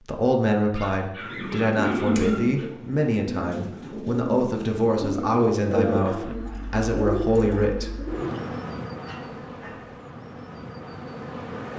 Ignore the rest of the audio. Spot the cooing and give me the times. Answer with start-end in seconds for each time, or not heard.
1.2-8.4.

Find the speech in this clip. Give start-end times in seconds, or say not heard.
0.1-8.0.